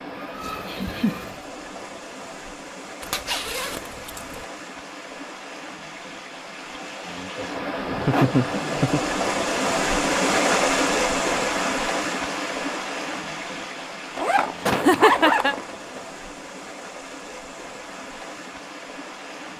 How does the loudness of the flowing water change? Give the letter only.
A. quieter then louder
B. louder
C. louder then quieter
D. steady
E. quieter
C.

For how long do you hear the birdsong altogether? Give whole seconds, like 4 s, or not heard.
not heard.